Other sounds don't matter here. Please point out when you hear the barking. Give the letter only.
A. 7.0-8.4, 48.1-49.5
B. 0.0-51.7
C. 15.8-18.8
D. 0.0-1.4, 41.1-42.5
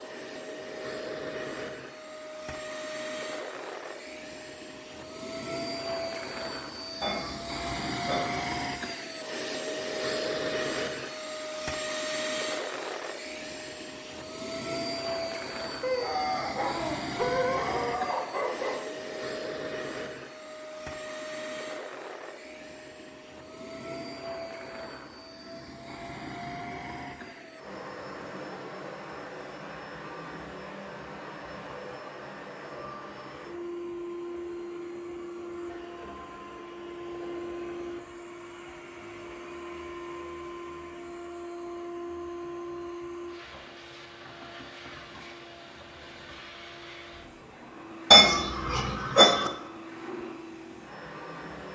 C.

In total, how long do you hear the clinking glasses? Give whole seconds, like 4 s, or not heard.
3 s.